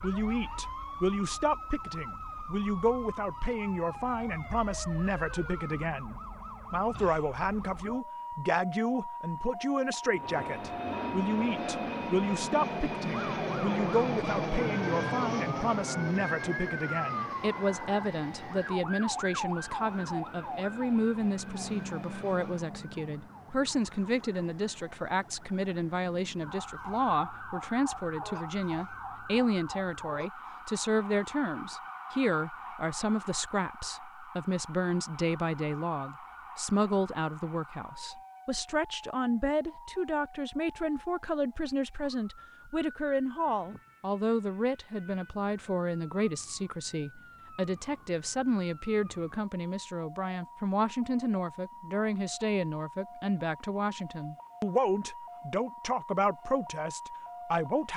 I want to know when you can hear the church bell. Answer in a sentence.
The church bell can't be heard in this clip.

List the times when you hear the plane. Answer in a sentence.
You can hear the plane from 10.1 to 22.7 s.